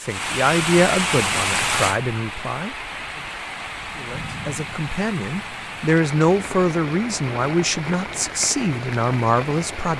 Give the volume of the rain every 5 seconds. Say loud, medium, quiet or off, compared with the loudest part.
loud, medium.